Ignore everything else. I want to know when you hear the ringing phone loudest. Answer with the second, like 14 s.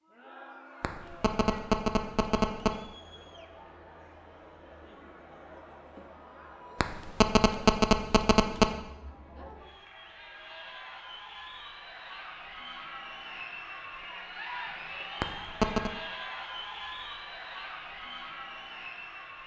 8 s.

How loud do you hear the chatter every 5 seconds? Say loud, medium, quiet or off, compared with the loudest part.
medium, medium, loud, loud.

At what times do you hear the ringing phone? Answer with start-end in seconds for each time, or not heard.
0.8-2.8, 6.8-8.8, 15.2-15.9.